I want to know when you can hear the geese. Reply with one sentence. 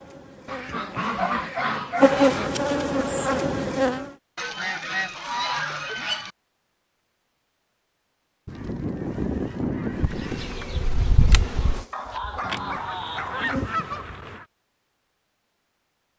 The geese can be heard from 0.5 to 2.5 s, from 4.3 to 6.3 s, from 8.4 to 10.5 s and from 12.4 to 14.4 s.